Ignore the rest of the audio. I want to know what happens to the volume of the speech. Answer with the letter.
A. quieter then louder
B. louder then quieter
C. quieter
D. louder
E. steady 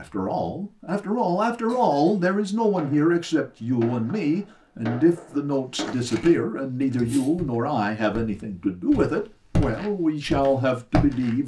E.